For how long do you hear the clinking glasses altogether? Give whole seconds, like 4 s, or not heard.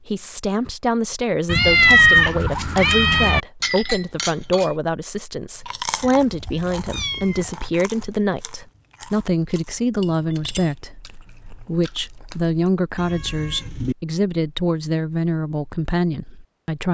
2 s.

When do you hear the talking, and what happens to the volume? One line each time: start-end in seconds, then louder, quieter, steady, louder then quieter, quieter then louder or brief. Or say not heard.
0.1-16.9 steady.